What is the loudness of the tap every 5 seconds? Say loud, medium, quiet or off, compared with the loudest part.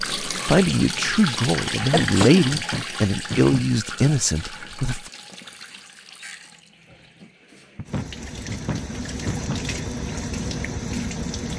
loud, medium, loud.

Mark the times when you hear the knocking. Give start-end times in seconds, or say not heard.
1.8-3.7, 7.8-9.7.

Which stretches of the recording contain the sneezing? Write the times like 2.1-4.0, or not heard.
1.9-2.5.